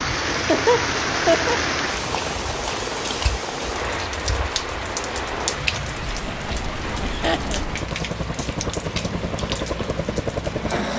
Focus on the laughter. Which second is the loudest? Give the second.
1 s.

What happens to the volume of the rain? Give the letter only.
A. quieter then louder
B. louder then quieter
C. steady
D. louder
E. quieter
E.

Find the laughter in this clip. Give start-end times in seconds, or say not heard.
0.3-1.6, 6.2-7.7.